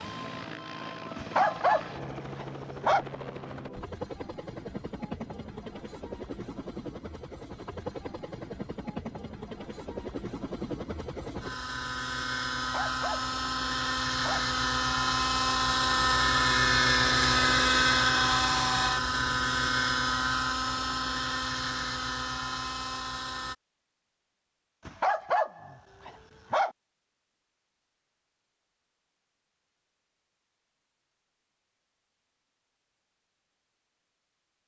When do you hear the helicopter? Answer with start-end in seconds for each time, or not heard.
0.0-23.6.